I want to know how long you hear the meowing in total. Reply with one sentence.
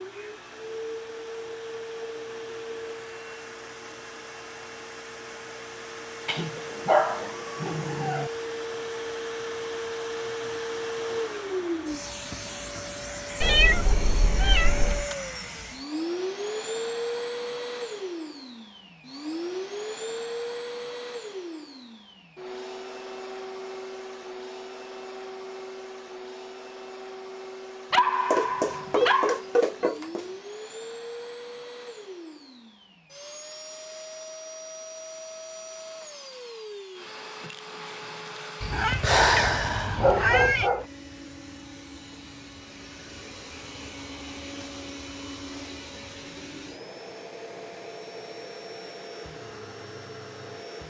You can hear the meowing for 6 seconds altogether.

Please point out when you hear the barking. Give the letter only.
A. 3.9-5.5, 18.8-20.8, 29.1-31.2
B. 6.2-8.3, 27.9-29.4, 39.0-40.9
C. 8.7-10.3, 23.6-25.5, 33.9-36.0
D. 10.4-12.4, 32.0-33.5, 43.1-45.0
B.